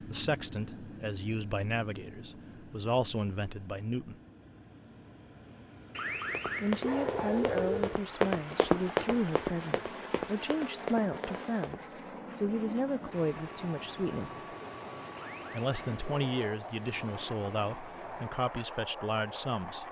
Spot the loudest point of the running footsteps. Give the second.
9 s.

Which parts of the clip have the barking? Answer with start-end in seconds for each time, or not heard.
6.0-8.0, 15.2-16.7.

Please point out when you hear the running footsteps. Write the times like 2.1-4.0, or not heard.
6.2-11.9.